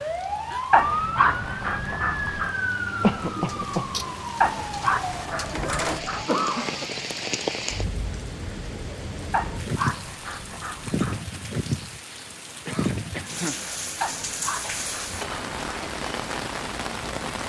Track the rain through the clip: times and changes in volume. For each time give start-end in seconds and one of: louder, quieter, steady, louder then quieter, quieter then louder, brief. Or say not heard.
0.0-17.4 louder.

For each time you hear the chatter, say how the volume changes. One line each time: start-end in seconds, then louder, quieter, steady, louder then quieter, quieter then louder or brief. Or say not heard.
not heard.